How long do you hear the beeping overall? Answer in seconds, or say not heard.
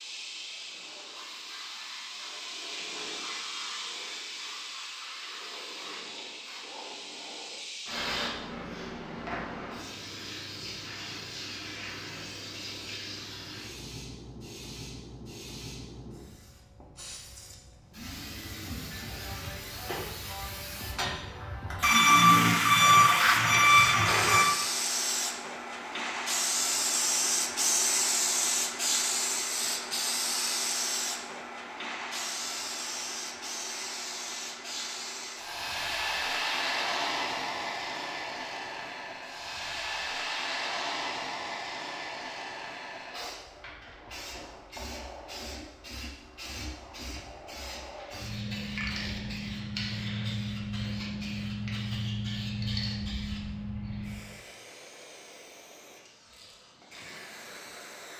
3 s.